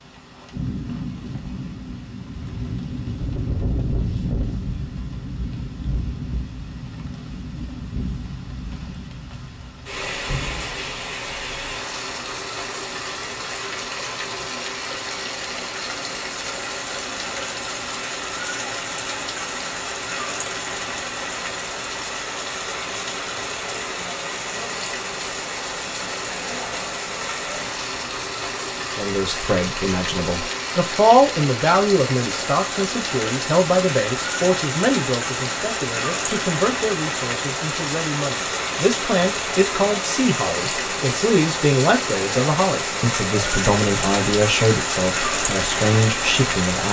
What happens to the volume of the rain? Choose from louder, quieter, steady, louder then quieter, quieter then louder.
louder.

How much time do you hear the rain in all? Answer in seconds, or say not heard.
47 s.